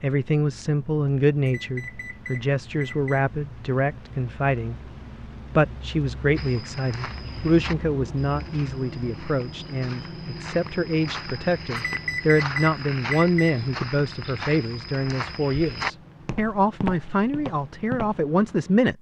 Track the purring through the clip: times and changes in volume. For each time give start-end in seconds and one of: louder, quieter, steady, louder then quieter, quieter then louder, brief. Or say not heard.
not heard.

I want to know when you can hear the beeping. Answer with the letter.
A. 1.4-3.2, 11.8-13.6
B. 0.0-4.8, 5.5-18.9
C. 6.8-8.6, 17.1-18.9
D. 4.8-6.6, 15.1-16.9
A.